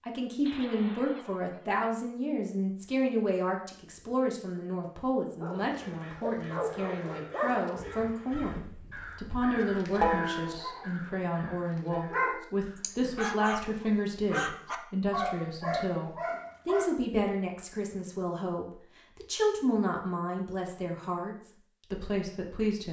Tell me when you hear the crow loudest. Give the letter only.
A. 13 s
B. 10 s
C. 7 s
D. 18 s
B.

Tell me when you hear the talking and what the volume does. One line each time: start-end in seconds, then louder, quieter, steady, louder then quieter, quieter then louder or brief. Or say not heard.
0.1-22.8 steady.